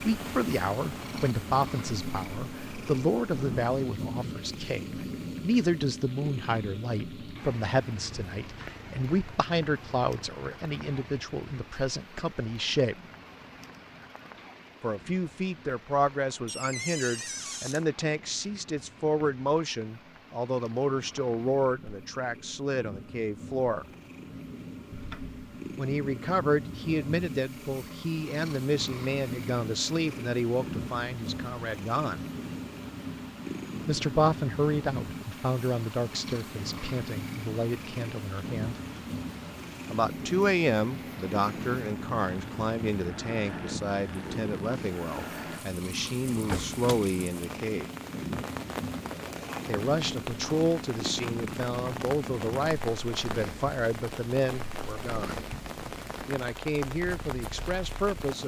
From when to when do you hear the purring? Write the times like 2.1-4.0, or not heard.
0.0-58.4.